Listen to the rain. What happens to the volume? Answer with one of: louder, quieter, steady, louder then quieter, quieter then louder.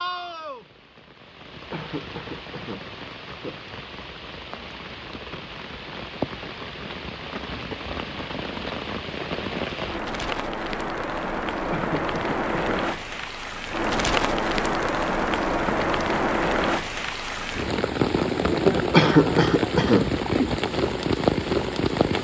louder.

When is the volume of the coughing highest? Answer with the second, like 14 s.
19 s.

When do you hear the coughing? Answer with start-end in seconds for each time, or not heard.
1.7-3.6, 11.7-12.8, 18.9-20.1.